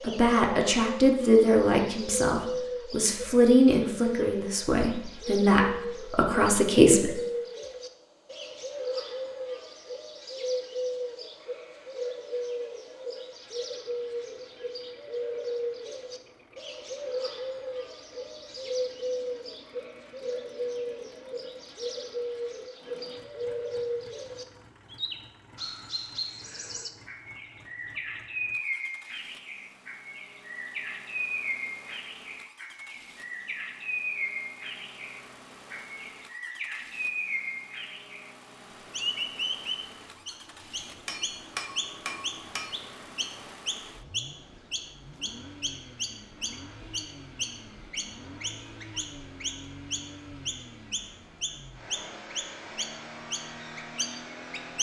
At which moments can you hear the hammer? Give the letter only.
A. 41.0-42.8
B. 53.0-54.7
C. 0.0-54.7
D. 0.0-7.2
A.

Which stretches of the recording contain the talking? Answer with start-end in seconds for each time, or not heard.
0.0-7.2.